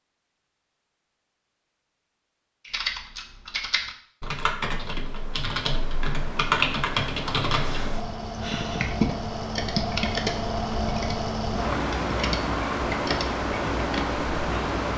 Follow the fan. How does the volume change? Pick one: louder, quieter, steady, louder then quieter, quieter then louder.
louder.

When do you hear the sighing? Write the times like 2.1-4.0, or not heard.
8.4-9.0.